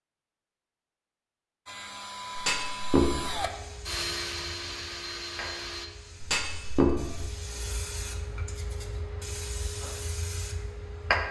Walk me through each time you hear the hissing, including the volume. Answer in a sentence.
You can hear the hissing from 3.4 to 11.2 s, getting louder.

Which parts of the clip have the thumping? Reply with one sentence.
The thumping can be heard from 2.4 to 3.4 s and from 6.2 to 7.2 s.